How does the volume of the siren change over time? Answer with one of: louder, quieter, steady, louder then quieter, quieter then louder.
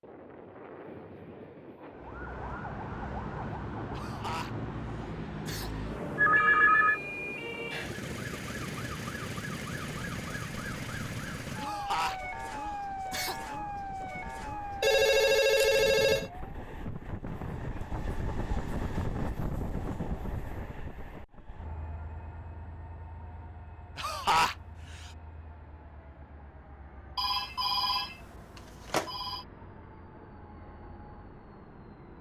steady.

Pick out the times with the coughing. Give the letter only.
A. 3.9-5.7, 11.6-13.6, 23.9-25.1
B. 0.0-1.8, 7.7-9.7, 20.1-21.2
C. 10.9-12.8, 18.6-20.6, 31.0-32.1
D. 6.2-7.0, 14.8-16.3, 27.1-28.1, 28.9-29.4
A.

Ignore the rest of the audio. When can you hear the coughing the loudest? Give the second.
24 s.